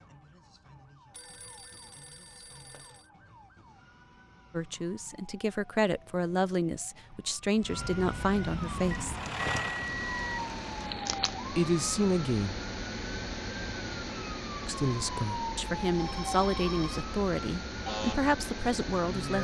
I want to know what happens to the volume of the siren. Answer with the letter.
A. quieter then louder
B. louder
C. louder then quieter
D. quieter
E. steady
B.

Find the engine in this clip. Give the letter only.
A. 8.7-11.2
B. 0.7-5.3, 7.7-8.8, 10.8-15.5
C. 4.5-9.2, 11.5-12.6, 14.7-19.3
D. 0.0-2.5
A.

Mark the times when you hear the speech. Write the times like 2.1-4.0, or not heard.
4.5-9.2, 11.5-12.6, 14.7-19.3.